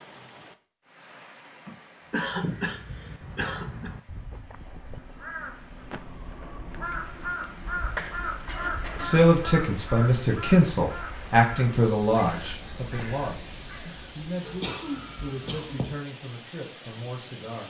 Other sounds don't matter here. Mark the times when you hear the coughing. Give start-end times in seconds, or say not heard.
1.6-3.9, 8.4-9.2, 14.4-15.9.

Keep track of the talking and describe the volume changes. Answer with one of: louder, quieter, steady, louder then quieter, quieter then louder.
quieter.